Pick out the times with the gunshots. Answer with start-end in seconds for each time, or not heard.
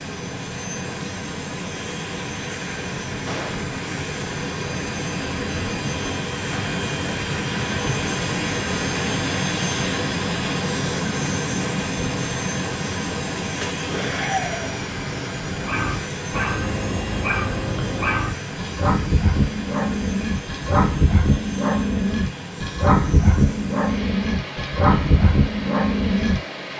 3.2-3.7.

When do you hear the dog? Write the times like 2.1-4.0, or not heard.
15.5-26.7.